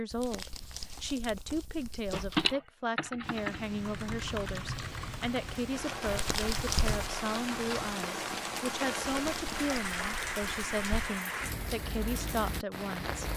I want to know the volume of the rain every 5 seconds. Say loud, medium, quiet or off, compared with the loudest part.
medium, loud, loud.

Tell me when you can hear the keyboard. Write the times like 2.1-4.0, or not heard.
2.4-7.9.